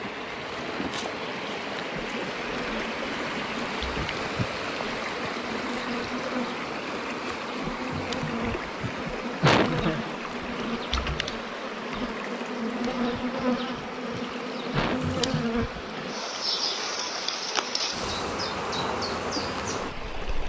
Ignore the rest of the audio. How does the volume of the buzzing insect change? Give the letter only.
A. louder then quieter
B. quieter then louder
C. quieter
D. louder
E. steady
D.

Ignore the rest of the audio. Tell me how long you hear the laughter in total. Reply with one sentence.
The laughter can be heard for 4 seconds in total.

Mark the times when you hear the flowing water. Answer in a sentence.
The flowing water can be heard from 0.0 to 20.4 s.